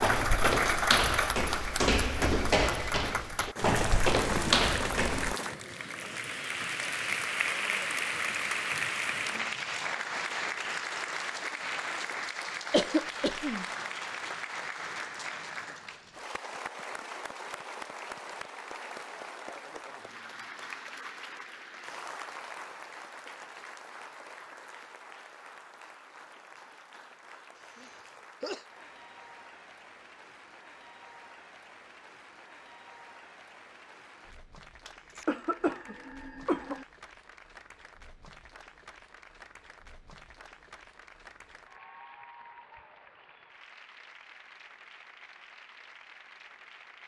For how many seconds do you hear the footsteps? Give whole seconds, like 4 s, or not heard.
5 s.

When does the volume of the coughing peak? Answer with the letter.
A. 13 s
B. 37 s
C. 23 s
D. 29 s
A.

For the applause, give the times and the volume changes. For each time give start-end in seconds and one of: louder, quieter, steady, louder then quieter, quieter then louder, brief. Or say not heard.
0.0-47.0 quieter.